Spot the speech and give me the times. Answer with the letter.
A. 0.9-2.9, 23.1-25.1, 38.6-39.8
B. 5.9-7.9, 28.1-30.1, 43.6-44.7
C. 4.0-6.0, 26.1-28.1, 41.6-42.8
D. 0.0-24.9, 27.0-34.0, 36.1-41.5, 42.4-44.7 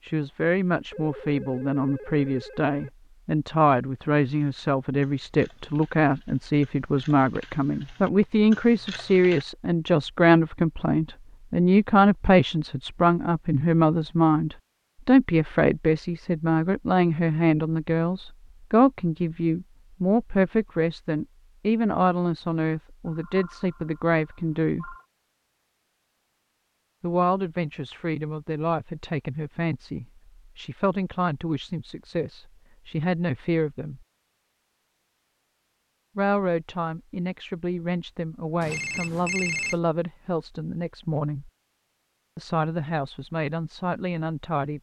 D.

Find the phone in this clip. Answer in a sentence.
The phone can be heard from 0.9 to 2.9 s, from 23.1 to 25.1 s and from 38.6 to 39.8 s.